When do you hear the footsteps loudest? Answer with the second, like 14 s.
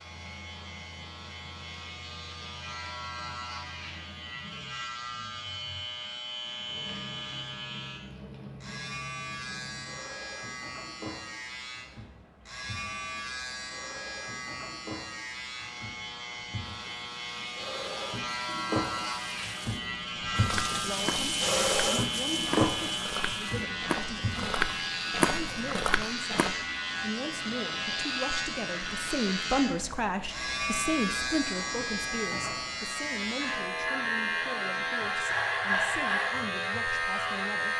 25 s.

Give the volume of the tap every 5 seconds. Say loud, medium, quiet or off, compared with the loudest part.
quiet, quiet, quiet, medium, loud, quiet, quiet, quiet.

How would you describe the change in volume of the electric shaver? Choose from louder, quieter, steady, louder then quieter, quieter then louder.
louder.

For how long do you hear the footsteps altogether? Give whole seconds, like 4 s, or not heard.
6 s.